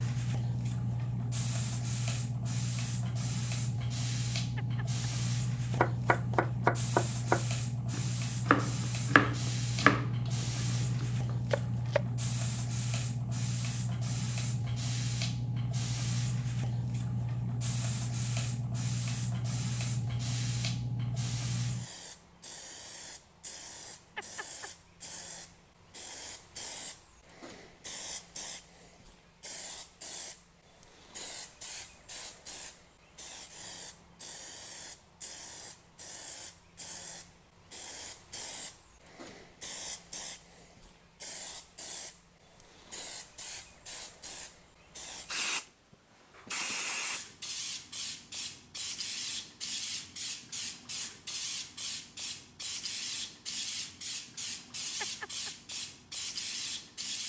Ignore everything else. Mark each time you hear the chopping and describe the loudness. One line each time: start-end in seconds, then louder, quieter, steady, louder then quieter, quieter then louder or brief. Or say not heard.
5.7-12.0 quieter.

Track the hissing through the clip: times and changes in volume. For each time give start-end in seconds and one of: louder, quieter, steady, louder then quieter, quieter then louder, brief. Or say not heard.
0.0-57.2 quieter then louder.